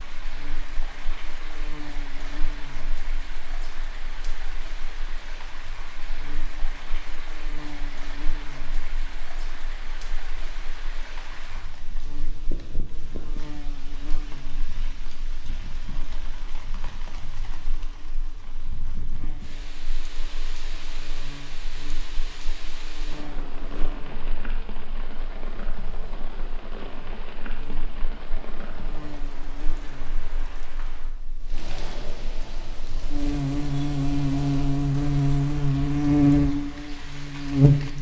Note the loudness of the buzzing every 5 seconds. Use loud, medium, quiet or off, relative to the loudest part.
quiet, quiet, quiet, quiet, quiet, quiet, medium, loud.